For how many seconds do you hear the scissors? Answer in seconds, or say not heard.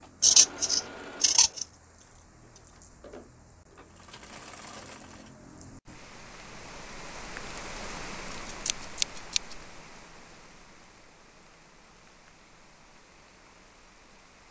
3 s.